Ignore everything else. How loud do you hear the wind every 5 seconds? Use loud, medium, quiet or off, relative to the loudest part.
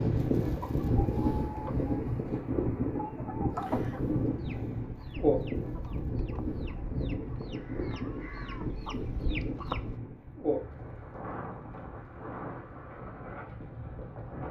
loud, loud, medium.